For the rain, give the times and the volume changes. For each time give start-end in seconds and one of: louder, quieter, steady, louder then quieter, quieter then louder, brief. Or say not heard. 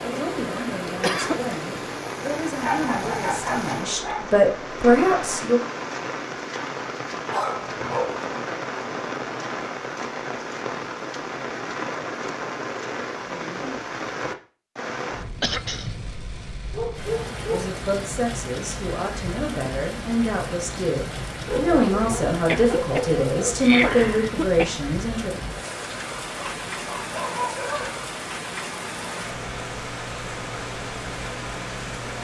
0.0-32.1 steady.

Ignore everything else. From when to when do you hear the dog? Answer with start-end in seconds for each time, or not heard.
2.6-4.2, 7.2-8.2, 16.7-17.7, 21.4-23.6, 26.4-27.9.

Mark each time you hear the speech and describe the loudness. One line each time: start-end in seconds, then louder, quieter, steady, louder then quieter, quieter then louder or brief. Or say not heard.
0.0-5.6 louder
17.5-25.3 louder.